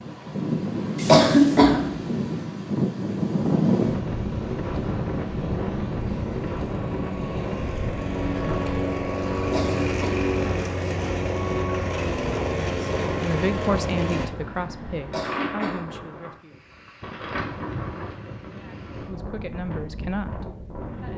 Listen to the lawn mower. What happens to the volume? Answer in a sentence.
The volume of the lawn mower goes up.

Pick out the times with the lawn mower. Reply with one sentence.
You can hear the lawn mower from 3.9 to 14.3 s.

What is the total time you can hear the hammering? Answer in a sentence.
The hammering can't be heard in this clip.